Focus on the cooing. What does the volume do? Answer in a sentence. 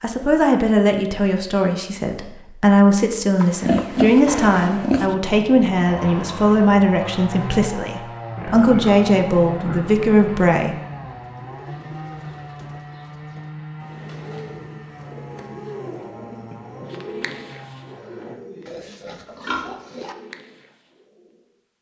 The volume of the cooing goes up, then down.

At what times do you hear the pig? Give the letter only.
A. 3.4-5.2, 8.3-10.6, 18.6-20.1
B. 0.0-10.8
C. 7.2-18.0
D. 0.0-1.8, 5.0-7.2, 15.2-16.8
A.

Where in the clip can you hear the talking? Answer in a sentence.
You can hear the talking from 0.0 to 10.8 s.